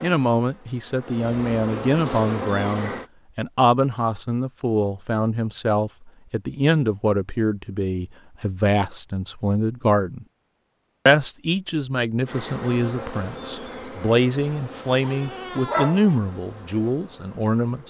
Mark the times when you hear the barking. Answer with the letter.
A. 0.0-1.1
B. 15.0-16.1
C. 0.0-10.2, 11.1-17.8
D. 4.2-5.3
B.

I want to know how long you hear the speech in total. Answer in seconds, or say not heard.
17 s.